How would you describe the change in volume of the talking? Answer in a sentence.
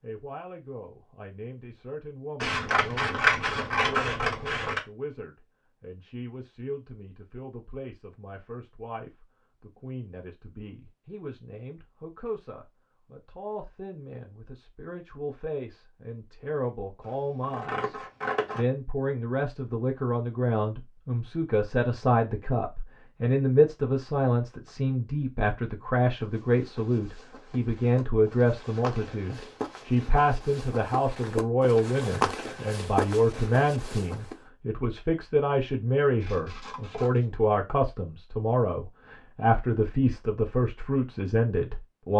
The loudness of the talking goes up.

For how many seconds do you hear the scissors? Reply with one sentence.
You can hear the scissors for 5 seconds altogether.